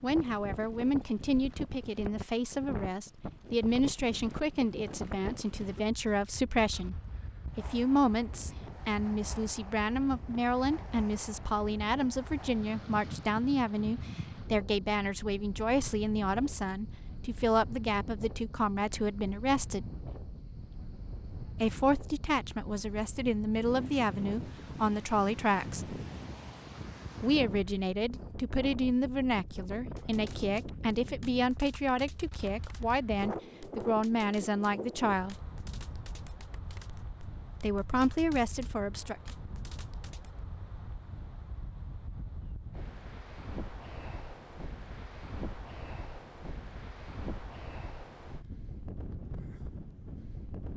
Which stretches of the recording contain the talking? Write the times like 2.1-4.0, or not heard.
0.0-7.0, 7.5-19.9, 21.6-26.0, 27.2-35.4, 37.6-39.1.